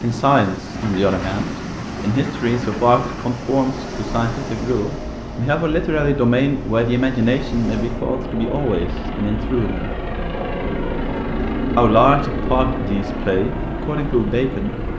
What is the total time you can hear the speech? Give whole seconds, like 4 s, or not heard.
13 s.